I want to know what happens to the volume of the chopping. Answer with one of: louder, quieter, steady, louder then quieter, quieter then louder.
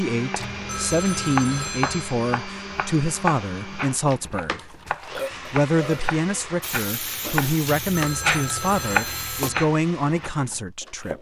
quieter then louder.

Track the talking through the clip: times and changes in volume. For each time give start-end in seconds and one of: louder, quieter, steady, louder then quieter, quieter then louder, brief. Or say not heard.
0.0-11.1 steady.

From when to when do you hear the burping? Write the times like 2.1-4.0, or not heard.
4.5-6.2.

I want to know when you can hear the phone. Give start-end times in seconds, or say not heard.
0.3-2.2, 7.8-9.7.